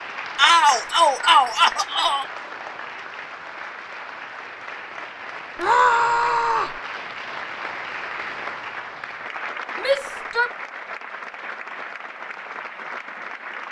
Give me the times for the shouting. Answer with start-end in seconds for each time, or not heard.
0.3-2.2, 5.5-6.8, 9.8-10.5.